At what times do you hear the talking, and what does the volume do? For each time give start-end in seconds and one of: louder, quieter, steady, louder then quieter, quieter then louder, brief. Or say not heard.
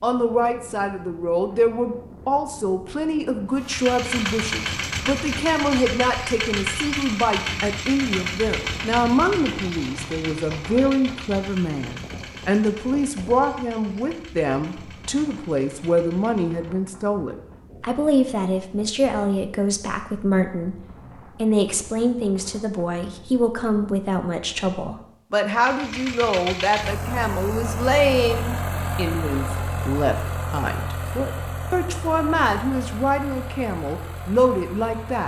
0.0-35.2 steady.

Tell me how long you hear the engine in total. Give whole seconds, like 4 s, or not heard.
23 s.